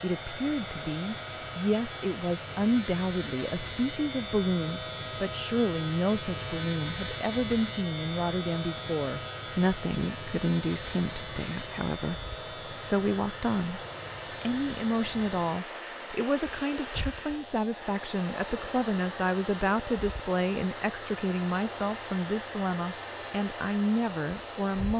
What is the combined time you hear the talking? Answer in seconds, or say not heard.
24 s.